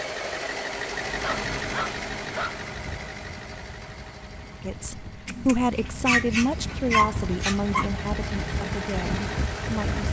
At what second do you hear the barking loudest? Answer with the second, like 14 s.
7 s.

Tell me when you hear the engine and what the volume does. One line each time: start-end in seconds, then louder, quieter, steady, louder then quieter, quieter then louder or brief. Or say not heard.
0.0-10.0 quieter then louder.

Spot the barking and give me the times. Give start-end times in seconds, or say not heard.
1.1-2.5, 5.2-7.8.